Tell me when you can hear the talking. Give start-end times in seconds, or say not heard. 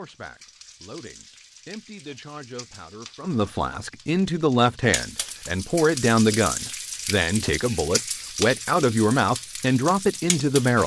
0.0-10.8.